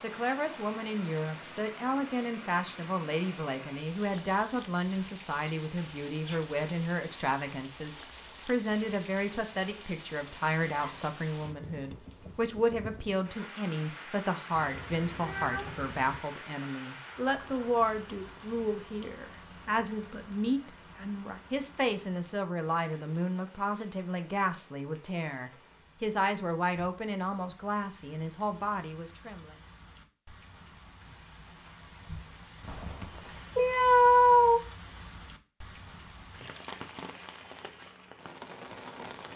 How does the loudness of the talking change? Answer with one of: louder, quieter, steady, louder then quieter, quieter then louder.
steady.